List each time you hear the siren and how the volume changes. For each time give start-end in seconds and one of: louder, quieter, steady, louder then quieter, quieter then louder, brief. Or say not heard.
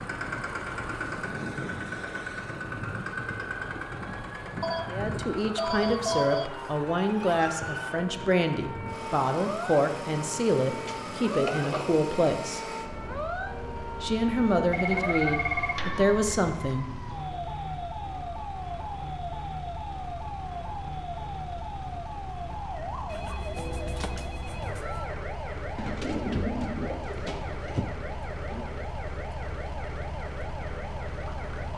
0.0-31.7 steady.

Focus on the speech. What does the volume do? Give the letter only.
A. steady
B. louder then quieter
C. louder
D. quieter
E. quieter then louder
A.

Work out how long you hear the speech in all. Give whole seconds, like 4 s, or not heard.
11 s.